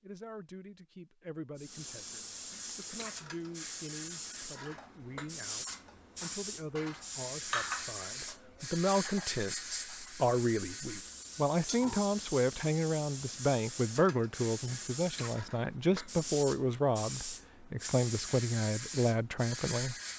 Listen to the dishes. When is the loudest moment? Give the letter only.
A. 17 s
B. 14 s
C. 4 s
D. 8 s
D.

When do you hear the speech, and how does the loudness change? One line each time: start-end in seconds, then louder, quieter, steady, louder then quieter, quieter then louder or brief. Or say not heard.
0.0-19.9 louder.